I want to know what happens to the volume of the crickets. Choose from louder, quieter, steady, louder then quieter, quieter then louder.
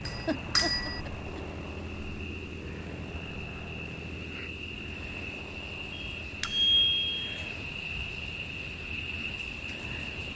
louder.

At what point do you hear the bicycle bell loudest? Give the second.
7 s.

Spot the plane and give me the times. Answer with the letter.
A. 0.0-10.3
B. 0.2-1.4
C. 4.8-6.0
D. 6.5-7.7
A.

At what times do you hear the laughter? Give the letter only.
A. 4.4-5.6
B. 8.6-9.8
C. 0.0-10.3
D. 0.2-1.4
D.